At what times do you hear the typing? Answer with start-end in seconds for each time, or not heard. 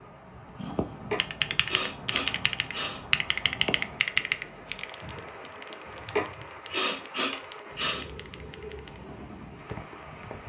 0.6-9.0.